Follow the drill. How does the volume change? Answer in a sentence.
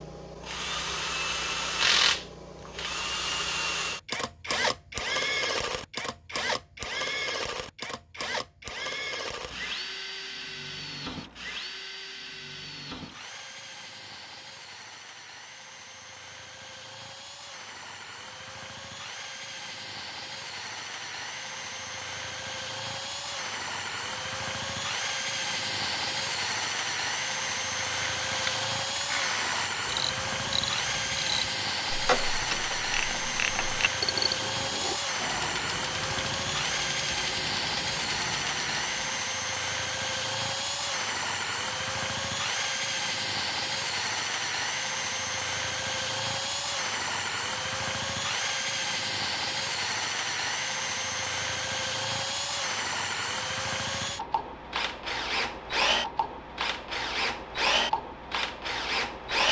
The loudness of the drill goes down, then up.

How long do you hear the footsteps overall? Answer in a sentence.
You can't hear the footsteps here.